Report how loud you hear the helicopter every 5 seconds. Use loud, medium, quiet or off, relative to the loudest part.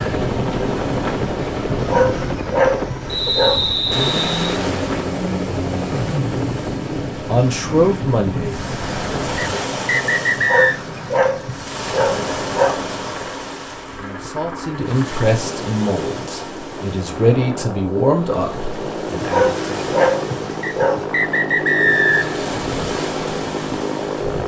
loud, medium, medium, loud, loud.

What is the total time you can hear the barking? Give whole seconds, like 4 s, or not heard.
6 s.